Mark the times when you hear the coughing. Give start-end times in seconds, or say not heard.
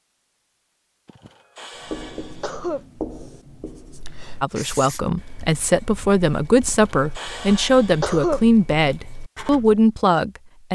1.1-2.9, 6.7-8.4.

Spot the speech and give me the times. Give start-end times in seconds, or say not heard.
4.4-10.7.